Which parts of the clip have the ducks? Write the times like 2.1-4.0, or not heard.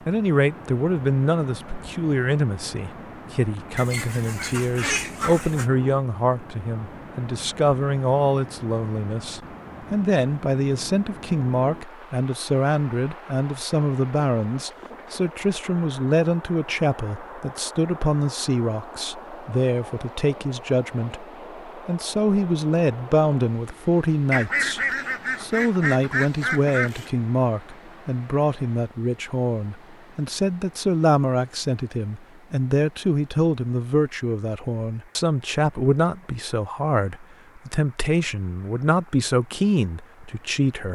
3.8-5.7, 24.3-27.1.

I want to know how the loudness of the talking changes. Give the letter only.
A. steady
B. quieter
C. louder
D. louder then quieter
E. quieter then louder
A.